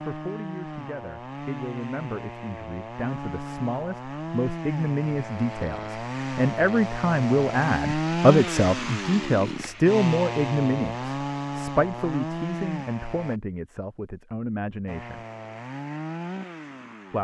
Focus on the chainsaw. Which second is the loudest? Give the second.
8 s.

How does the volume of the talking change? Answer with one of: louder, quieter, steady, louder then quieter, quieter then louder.
louder then quieter.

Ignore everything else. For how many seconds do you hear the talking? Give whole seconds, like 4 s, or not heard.
15 s.